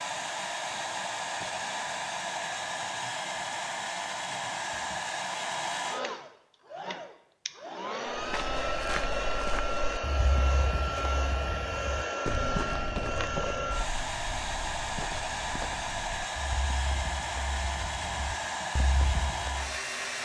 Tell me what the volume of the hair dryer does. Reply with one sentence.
The loudness of the hair dryer stays about the same.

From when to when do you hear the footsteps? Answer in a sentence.
The footsteps can be heard from 8.2 to 19.8 s.